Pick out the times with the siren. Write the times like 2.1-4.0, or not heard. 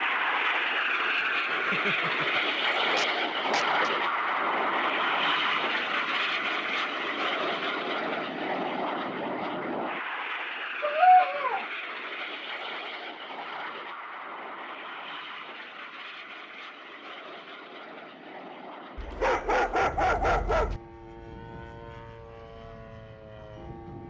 not heard.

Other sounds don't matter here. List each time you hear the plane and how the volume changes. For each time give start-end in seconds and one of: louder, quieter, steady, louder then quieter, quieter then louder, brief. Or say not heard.
0.0-24.0 quieter.